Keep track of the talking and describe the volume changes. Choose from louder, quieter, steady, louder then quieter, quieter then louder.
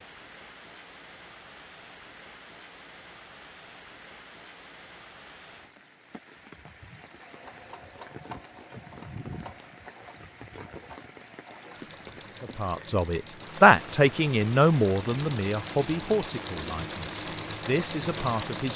quieter.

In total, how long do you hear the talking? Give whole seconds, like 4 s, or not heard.
6 s.